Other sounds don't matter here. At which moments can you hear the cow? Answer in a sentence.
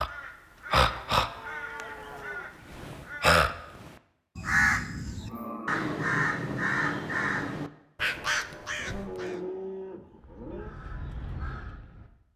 You can hear the cow from 0.8 to 2.5 s, from 4.3 to 6.0 s and from 8.8 to 10.8 s.